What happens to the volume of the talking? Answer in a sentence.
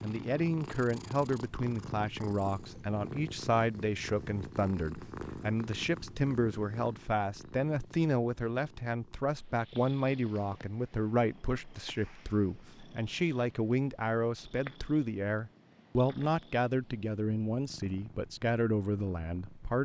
The loudness of the talking stays about the same.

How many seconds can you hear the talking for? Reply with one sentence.
The talking can be heard for 20 seconds in total.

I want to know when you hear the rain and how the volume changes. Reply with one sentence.
The rain can't be heard in this clip.